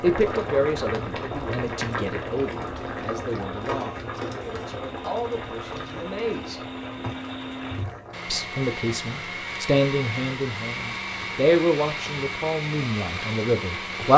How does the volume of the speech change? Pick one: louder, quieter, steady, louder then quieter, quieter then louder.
quieter then louder.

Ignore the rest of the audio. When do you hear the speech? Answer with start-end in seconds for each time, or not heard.
0.0-6.6, 8.2-14.1.